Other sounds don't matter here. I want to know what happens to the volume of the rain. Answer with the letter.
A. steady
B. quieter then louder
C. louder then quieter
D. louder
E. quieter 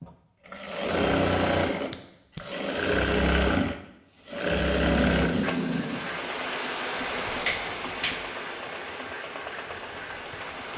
E.